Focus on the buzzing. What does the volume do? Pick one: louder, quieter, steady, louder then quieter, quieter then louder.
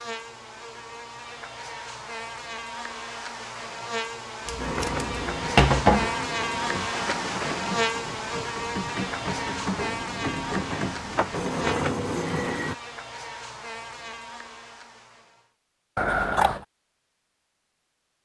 louder then quieter.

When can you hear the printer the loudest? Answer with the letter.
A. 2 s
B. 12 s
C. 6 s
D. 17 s
B.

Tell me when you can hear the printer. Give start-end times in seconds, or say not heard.
4.5-12.8.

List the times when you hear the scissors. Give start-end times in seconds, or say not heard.
4.5-6.1, 15.9-16.6.